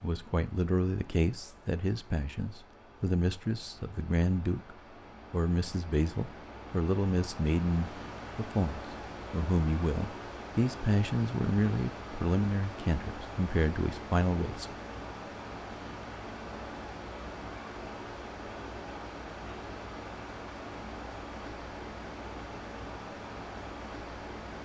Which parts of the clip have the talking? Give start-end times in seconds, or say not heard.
0.0-14.7.